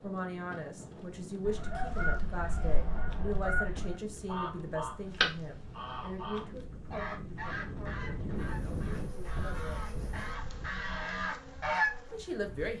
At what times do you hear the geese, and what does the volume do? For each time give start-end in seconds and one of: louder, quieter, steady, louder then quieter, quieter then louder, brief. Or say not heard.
1.4-11.9 quieter then louder.